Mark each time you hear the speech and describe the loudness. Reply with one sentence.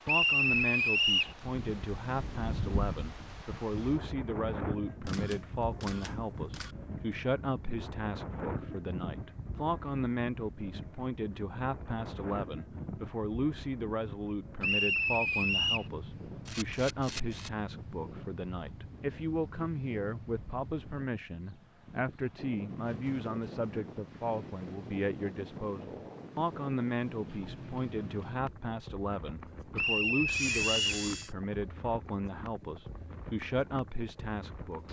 The speech can be heard from 0.1 to 34.8 s, at a steady volume.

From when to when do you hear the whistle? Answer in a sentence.
The whistle can be heard from 0.1 to 1.4 s, from 14.6 to 15.9 s and from 29.8 to 30.8 s.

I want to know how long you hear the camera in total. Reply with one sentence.
You can hear the camera for 4 seconds altogether.